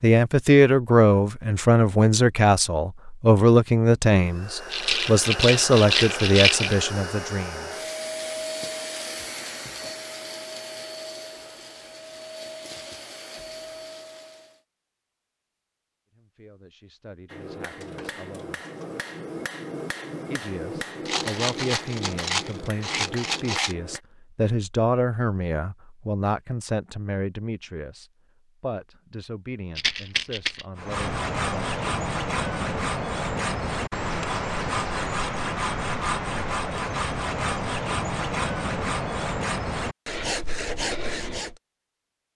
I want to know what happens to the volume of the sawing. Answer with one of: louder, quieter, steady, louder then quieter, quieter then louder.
steady.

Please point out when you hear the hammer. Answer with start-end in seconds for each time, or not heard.
17.2-24.0.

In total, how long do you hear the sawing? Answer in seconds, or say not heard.
11 s.